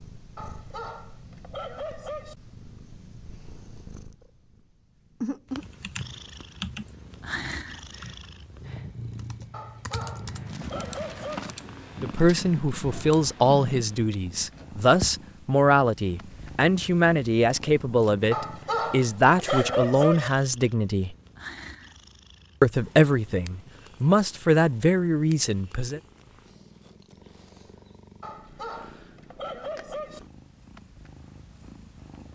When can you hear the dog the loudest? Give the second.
20 s.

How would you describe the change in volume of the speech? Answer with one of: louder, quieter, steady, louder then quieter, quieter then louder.
steady.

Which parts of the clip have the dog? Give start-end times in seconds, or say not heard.
0.3-2.4, 9.5-11.6, 18.3-20.3, 28.2-30.2.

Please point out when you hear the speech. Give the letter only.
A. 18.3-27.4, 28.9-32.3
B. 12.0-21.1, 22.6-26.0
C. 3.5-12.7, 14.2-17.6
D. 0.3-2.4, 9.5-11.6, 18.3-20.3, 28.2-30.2
B.